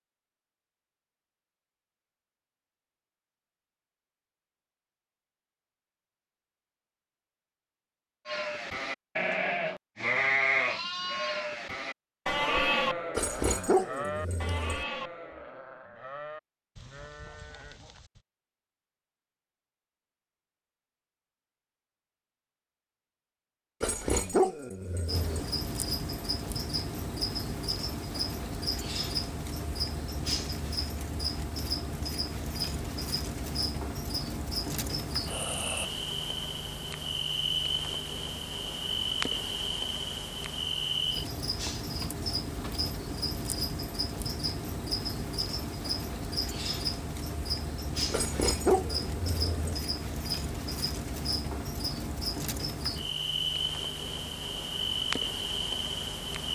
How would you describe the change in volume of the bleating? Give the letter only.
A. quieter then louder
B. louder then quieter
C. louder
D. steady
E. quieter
E.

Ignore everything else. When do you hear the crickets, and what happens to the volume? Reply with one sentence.
The crickets can be heard from 25.1 to 56.5 s, at a steady volume.